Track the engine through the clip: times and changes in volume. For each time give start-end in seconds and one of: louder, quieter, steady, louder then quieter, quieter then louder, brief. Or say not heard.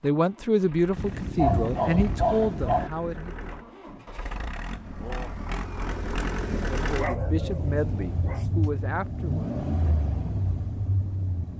0.0-11.5 louder.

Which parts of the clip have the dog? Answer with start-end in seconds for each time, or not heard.
0.9-2.9, 6.9-8.7.